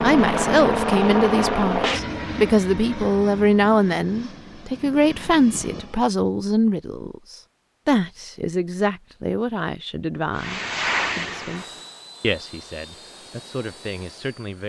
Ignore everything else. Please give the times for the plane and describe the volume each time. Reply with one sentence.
The plane can be heard from 0.0 to 6.0 s, getting quieter; and from 10.3 to 14.6 s, getting quieter.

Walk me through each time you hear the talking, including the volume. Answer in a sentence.
You can hear the talking from 0.0 to 14.6 s, getting quieter.